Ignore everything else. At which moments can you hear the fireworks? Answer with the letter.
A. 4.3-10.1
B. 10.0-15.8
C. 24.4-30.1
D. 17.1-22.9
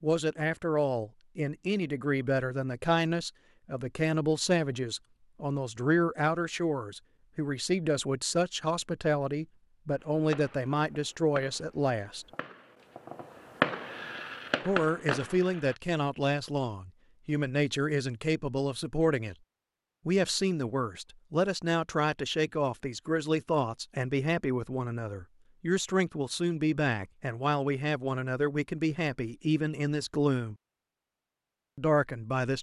B.